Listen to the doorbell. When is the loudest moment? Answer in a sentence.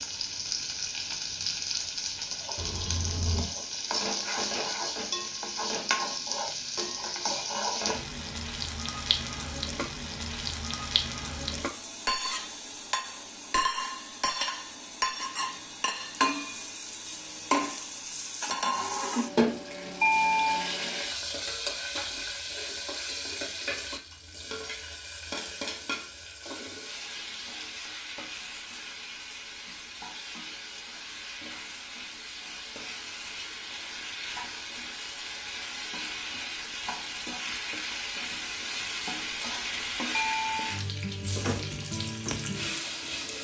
The volume of the doorbell peaks at 20 seconds.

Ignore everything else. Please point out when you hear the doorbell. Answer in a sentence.
You can hear the doorbell from 2.5 to 3.5 s, from 20.0 to 20.6 s and from 40.1 to 40.8 s.